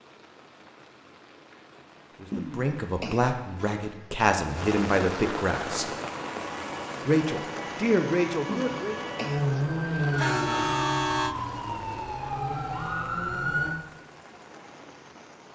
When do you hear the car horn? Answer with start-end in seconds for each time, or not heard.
3.5-4.2, 10.2-11.3.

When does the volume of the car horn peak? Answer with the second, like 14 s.
11 s.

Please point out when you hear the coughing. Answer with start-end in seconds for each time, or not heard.
2.3-3.3, 8.4-9.4.